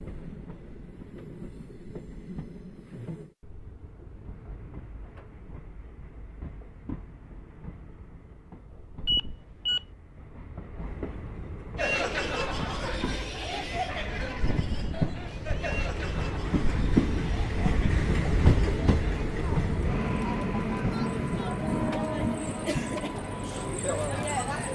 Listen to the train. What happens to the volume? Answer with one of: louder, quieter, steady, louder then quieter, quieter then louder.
louder.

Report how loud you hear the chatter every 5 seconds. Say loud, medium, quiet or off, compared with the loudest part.
off, off, loud, medium, loud.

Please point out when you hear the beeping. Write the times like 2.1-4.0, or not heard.
9.1-9.8.